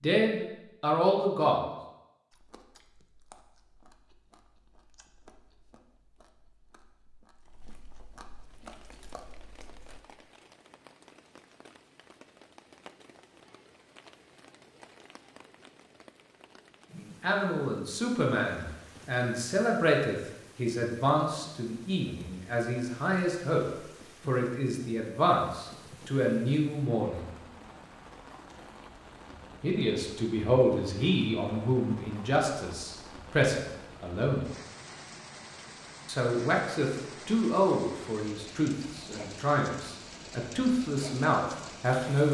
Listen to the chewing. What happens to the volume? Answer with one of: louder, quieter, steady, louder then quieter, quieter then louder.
quieter then louder.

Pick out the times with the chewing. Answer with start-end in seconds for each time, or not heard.
2.3-10.0.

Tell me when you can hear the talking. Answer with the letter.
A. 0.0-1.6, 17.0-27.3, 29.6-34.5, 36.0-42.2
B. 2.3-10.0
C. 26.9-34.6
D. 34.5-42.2
A.